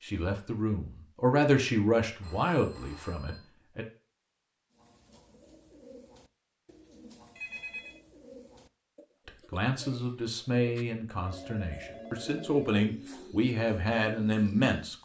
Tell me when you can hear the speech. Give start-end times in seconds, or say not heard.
0.0-3.9, 9.2-15.0.